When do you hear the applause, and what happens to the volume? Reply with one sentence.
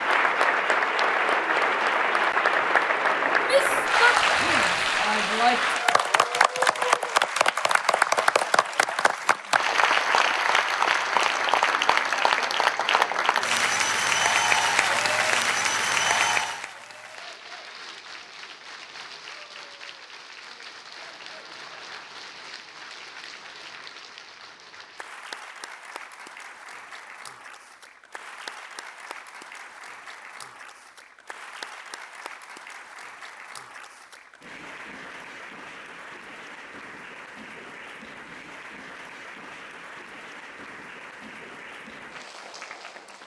You can hear the applause from 0.0 to 43.2 s, getting quieter.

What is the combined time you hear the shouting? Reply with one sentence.
You can hear the shouting for 2 seconds altogether.